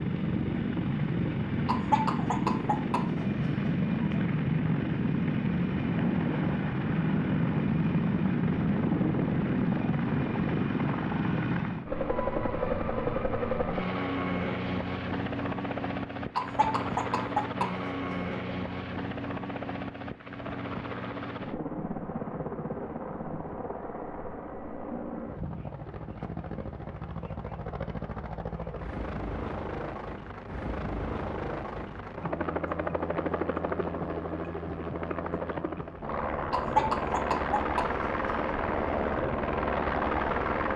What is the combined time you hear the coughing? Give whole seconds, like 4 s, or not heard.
7 s.